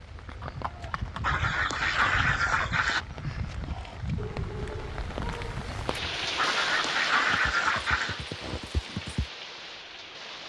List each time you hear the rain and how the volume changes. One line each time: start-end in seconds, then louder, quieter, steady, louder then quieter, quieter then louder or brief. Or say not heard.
0.0-10.4 louder then quieter.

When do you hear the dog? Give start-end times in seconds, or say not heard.
4.2-5.7.